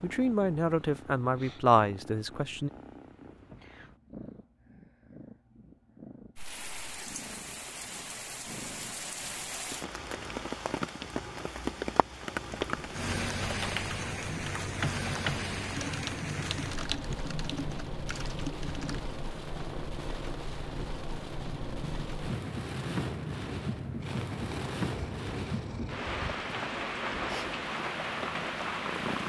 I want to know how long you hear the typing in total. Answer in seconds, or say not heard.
7 s.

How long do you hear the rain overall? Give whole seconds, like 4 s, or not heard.
23 s.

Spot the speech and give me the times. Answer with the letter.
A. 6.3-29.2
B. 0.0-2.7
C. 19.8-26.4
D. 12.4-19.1
B.